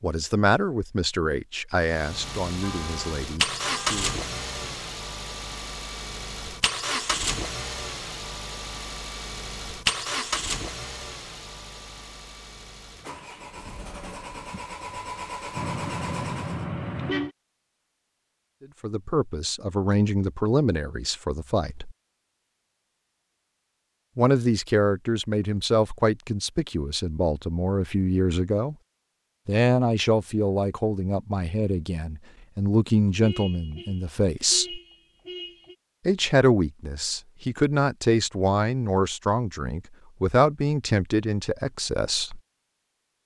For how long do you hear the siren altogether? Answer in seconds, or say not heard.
not heard.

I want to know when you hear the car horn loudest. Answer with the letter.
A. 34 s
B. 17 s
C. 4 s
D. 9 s
B.